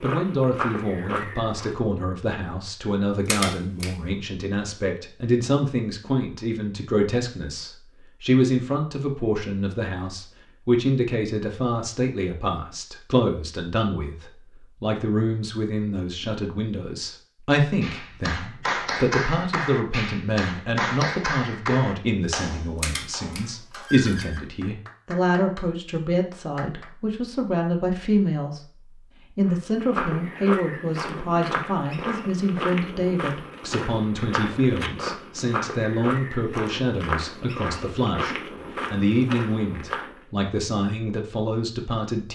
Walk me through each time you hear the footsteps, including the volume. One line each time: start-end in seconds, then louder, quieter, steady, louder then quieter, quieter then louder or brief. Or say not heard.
0.0-1.8 brief
29.4-40.2 steady.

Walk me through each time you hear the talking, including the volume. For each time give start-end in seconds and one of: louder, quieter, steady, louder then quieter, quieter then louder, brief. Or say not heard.
0.0-28.6 steady
29.4-42.2 steady.